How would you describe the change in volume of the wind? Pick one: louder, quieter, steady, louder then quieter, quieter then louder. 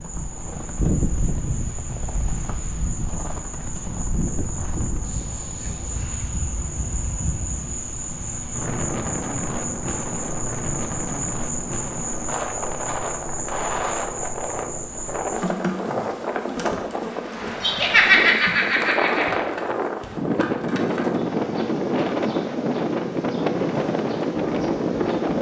louder.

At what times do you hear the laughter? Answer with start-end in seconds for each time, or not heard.
17.6-19.4.